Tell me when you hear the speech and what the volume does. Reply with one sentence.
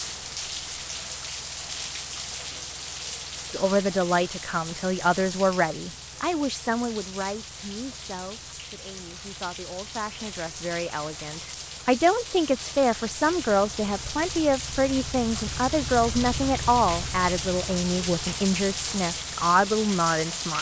You can hear the speech from 3.5 to 20.5 s, getting quieter then louder.